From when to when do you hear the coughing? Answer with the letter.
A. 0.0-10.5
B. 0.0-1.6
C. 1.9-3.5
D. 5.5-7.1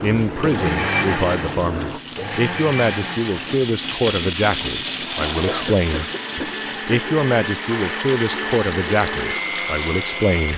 D.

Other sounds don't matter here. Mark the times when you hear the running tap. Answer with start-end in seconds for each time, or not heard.
0.0-10.5.